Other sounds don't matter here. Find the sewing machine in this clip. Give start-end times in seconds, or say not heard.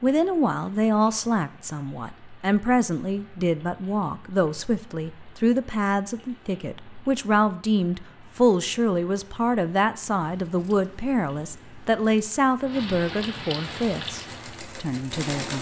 13.6-15.5.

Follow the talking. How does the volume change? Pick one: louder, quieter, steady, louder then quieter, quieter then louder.
steady.